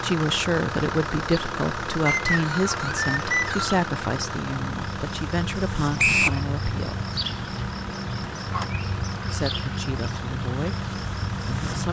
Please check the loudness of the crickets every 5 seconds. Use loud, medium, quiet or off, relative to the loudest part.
medium, loud, loud.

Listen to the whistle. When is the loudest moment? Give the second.
6 s.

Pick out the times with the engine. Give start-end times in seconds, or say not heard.
0.0-11.8.